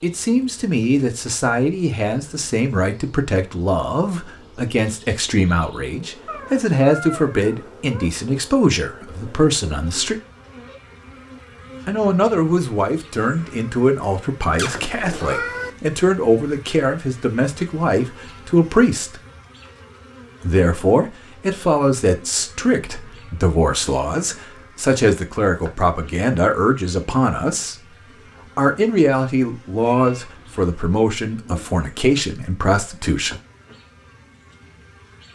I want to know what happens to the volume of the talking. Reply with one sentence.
The volume of the talking stays about the same.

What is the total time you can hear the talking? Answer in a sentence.
The talking can be heard for 30 seconds in total.